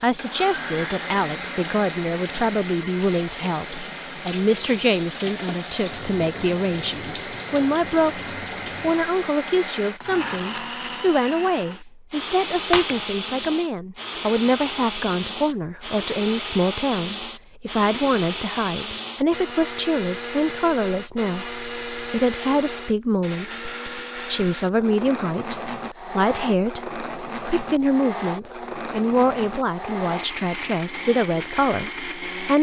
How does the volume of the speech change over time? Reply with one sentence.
The volume of the speech stays about the same.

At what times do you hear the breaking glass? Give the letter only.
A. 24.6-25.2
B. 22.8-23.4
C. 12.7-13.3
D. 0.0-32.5
C.